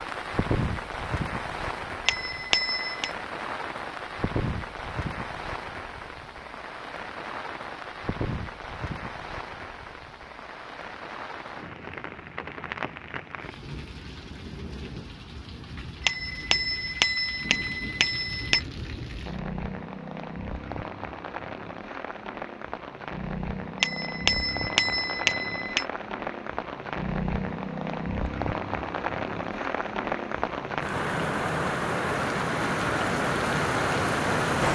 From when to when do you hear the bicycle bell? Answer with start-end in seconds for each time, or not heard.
2.0-3.1, 16.0-18.6, 23.8-25.9.